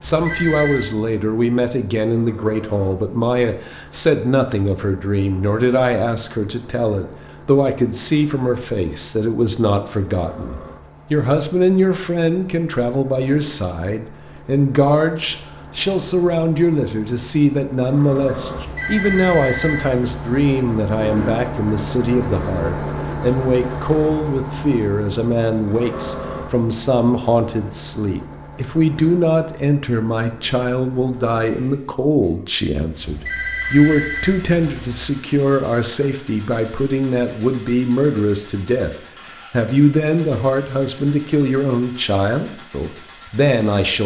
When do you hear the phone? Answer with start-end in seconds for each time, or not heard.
0.1-0.9, 18.6-20.6, 33.0-35.0.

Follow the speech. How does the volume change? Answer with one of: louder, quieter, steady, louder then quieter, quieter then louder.
steady.